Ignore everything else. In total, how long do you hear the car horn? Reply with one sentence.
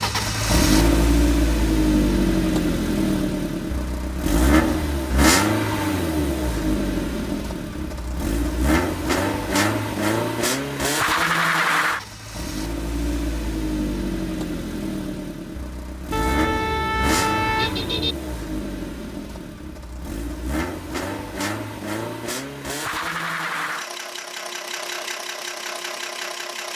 You can hear the car horn for 2 seconds altogether.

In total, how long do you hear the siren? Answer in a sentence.
The siren can't be heard in this clip.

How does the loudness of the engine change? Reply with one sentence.
The volume of the engine goes down.